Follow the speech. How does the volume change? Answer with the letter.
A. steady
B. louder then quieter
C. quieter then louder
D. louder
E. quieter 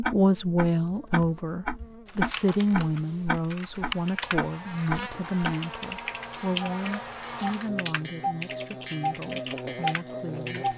E.